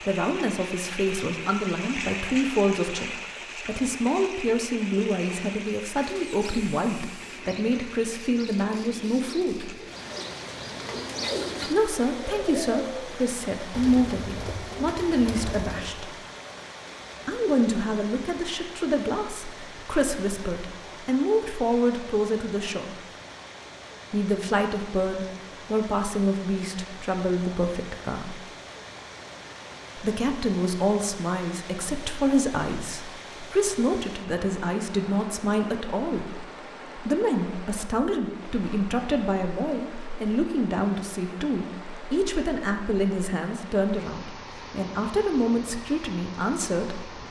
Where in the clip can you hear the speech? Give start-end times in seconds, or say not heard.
0.0-9.7, 11.7-16.1, 17.2-22.9, 24.1-28.4, 29.9-36.4, 37.0-47.0.